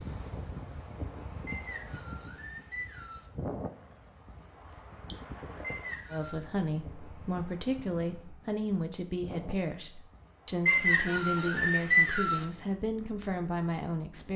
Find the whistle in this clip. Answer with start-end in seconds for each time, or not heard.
1.4-3.2, 5.6-6.5, 10.7-12.4.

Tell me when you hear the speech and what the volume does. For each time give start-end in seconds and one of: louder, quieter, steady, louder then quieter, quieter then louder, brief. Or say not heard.
6.1-14.3 steady.